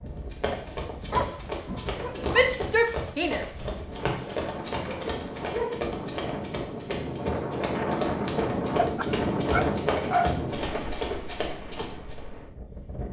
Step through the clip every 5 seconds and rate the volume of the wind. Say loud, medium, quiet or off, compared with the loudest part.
medium, loud, medium.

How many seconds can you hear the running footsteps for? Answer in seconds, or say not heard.
12 s.